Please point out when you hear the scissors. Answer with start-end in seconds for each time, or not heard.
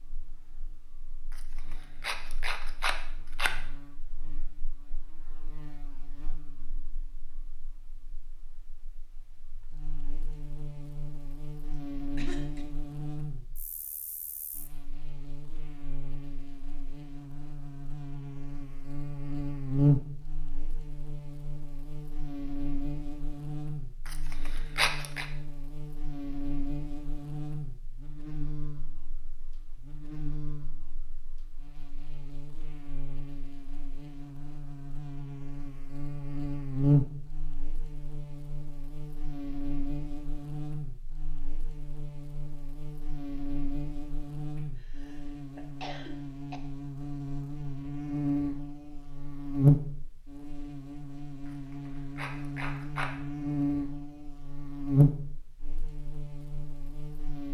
2.0-3.5, 24.1-25.2, 51.5-53.1.